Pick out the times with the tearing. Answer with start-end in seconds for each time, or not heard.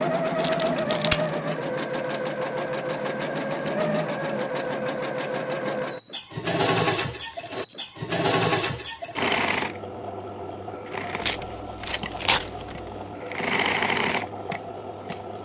0.4-1.3, 7.3-8.0, 11.2-12.9.